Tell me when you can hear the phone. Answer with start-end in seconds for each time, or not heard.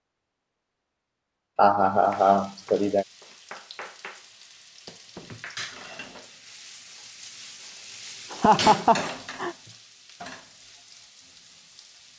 not heard.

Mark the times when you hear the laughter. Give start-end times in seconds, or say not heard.
1.6-3.0, 8.3-9.6.